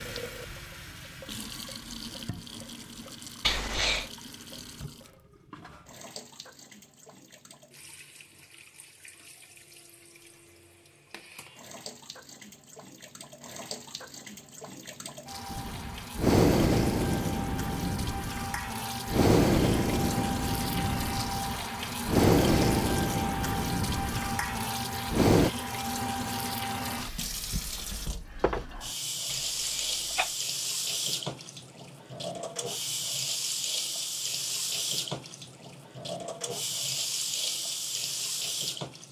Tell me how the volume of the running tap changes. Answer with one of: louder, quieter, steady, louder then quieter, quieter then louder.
louder.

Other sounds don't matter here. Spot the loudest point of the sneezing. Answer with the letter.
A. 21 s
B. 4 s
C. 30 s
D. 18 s
B.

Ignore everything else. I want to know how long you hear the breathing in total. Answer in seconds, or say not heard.
10 s.